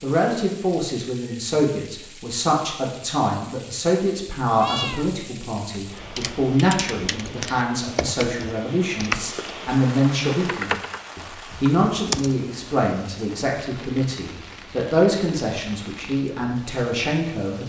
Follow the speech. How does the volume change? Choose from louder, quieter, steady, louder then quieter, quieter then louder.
steady.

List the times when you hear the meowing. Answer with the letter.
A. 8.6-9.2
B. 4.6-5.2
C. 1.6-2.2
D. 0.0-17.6
B.